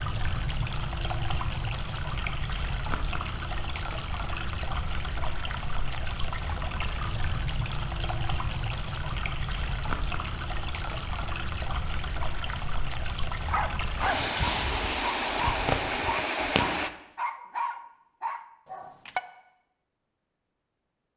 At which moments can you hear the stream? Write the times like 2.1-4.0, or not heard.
0.0-16.9.